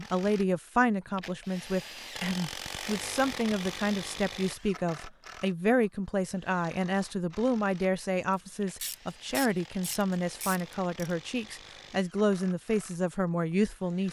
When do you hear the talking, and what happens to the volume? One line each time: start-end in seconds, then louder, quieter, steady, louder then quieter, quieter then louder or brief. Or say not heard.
0.0-14.0 steady.